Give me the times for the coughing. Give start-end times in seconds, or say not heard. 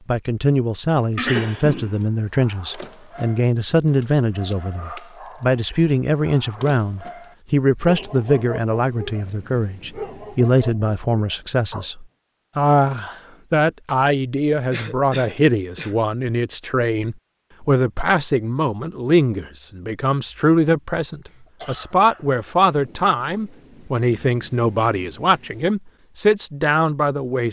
1.1-2.0, 14.7-16.0, 21.2-22.4.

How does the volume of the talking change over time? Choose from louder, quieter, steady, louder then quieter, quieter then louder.
steady.